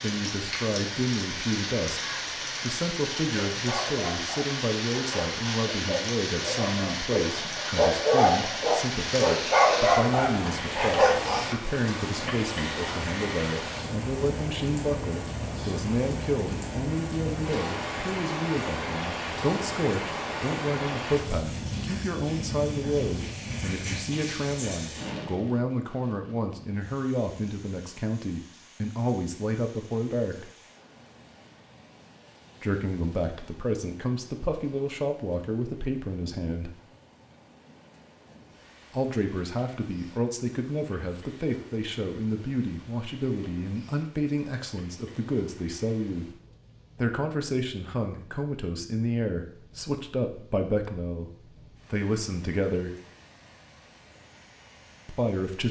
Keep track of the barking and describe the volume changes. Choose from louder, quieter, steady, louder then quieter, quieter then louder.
louder.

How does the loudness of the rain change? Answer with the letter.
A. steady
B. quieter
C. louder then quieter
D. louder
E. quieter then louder
B.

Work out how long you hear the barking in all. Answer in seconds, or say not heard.
8 s.